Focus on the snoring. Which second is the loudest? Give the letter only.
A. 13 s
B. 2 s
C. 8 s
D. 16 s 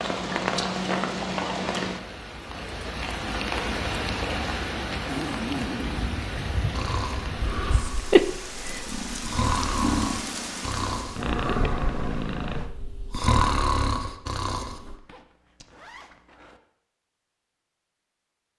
A.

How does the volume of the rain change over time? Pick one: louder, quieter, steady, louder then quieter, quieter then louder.
quieter.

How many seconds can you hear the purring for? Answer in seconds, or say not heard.
7 s.